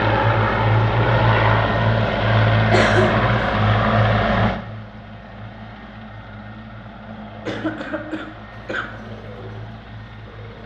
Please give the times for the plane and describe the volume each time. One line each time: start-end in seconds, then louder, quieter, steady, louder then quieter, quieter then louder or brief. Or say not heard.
0.0-10.6 quieter.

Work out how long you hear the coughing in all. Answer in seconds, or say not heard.
2 s.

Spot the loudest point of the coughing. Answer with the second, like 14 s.
3 s.